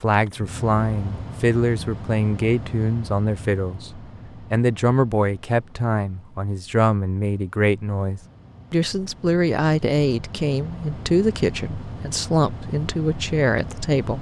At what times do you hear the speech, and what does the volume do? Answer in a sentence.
The speech can be heard from 0.0 to 14.1 s, at a steady volume.